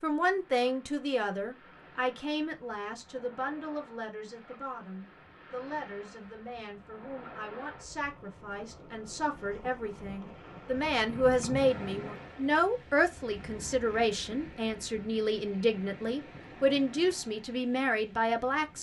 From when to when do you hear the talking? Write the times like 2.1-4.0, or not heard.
0.0-18.7.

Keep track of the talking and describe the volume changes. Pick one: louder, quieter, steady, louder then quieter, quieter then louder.
quieter then louder.